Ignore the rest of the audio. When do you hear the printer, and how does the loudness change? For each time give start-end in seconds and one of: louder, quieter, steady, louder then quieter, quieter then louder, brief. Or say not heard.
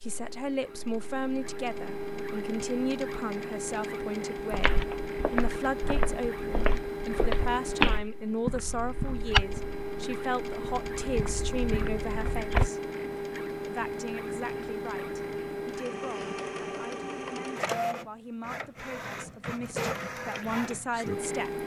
0.0-21.6 steady.